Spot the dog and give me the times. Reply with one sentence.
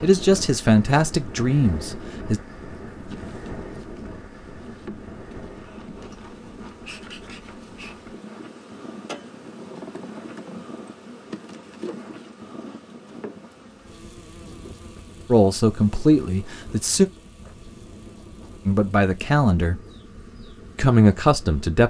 You can't hear the dog here.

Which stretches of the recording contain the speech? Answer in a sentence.
The speech can be heard from 0.0 to 2.4 s, from 15.2 to 17.1 s, from 18.6 to 19.8 s and from 20.8 to 21.8 s.